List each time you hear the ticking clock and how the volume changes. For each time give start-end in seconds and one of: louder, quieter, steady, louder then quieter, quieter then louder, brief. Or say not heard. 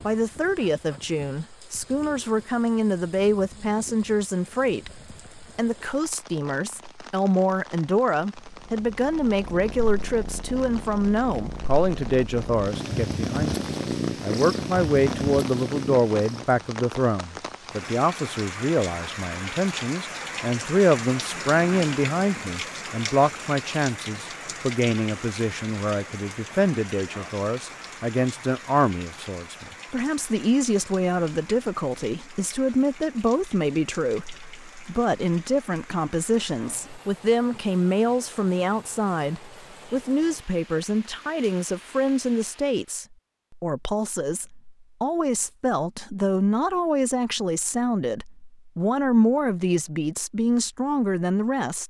not heard.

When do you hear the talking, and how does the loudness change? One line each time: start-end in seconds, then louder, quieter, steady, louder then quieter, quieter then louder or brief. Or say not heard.
0.0-51.8 steady.